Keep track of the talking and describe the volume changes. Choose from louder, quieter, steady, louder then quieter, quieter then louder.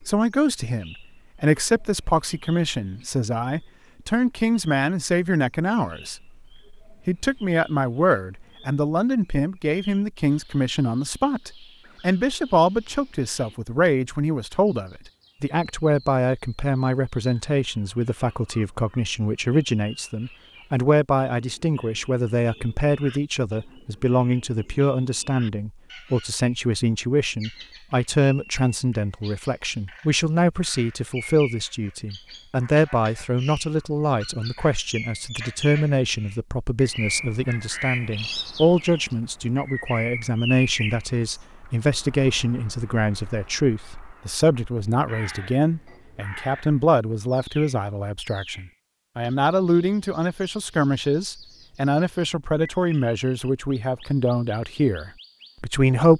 steady.